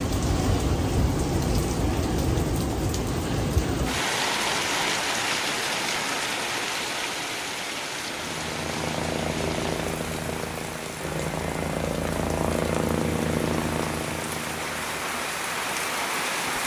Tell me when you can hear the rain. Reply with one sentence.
The rain can be heard from 0.0 to 16.6 s.